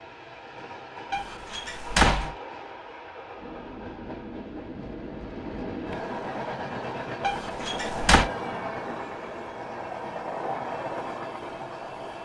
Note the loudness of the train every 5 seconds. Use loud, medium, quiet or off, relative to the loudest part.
medium, loud, loud.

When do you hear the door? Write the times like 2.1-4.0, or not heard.
1.1-2.4, 7.2-8.3.